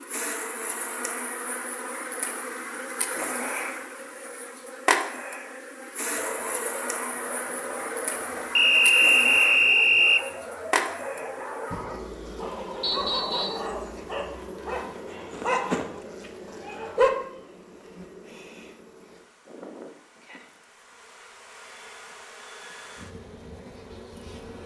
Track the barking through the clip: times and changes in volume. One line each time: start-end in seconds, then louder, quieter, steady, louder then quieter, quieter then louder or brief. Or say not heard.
6.2-17.1 louder.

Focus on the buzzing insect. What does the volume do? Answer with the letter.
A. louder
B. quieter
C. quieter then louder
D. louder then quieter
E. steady
B.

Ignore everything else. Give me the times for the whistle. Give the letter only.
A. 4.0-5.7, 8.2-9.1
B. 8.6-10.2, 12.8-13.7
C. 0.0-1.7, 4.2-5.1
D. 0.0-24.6
B.